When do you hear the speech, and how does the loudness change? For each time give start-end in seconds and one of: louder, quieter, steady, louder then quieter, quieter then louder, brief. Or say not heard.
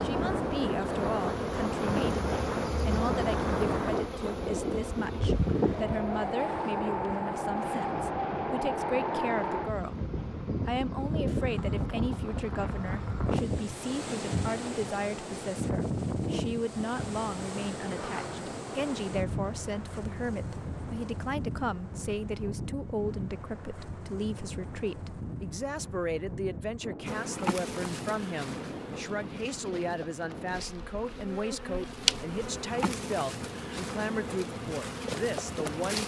0.0-10.1 steady
10.7-36.0 steady.